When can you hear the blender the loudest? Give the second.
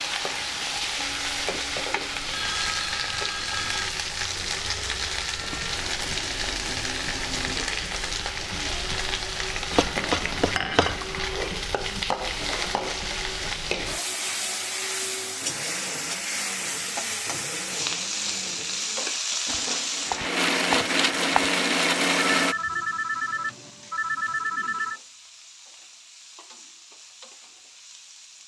22 s.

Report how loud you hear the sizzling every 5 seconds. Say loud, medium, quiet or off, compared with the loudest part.
loud, loud, loud, loud, quiet, quiet.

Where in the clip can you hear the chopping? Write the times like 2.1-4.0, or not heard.
9.7-11.0, 19.4-21.4.